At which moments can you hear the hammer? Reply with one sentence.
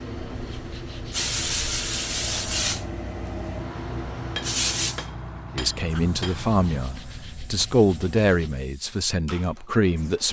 The hammer can be heard from 4.2 to 6.5 s.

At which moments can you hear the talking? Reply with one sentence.
You can hear the talking from 5.5 to 10.2 s.